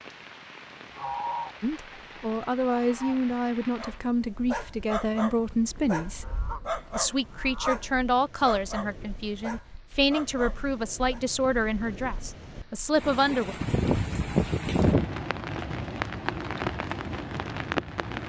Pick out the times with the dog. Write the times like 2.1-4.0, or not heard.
3.8-11.2.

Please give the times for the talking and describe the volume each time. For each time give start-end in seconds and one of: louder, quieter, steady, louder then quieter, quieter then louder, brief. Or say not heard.
1.6-13.6 steady.